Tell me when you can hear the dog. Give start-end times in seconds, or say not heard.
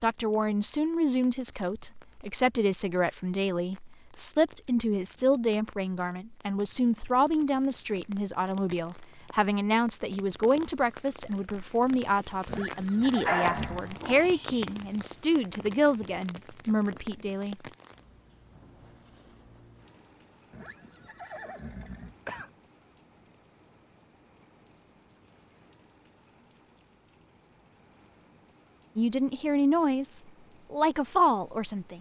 13.2-15.2.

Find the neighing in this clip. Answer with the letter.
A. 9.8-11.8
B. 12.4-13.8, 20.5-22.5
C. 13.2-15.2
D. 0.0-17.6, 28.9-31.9
B.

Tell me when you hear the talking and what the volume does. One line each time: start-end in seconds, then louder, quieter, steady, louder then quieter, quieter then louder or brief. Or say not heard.
0.0-17.6 steady
28.9-31.9 brief.